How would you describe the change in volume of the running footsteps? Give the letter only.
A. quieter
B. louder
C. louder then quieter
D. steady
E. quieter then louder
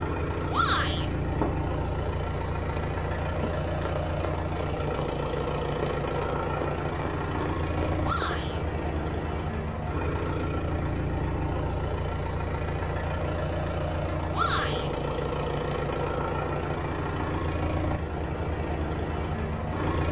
B.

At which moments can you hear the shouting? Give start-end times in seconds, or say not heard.
0.5-1.1, 8.0-8.6, 14.3-14.9.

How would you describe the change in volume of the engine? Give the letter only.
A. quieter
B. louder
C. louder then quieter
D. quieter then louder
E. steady
E.